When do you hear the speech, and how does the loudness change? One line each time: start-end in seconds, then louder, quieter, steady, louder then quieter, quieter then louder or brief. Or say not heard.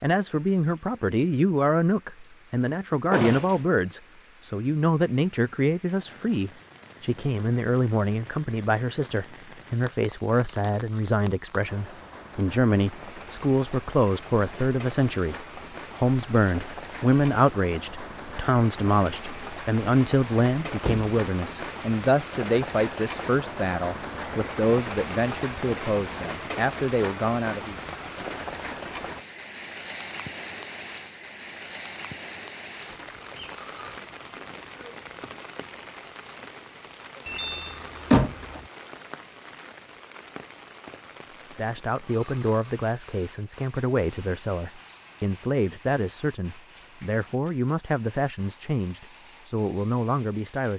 0.0-27.8 steady
41.2-50.7 steady.